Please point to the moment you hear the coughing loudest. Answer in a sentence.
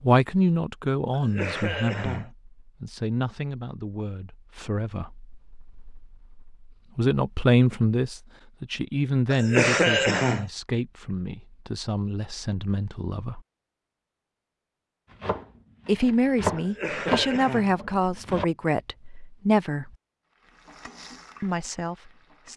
The volume of the coughing peaks at 10 seconds.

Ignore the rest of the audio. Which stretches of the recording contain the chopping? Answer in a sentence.
You can hear the chopping from 15.1 to 18.4 s.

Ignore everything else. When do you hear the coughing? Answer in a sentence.
The coughing can be heard from 1.1 to 2.3 s, from 9.3 to 10.5 s and from 16.6 to 17.8 s.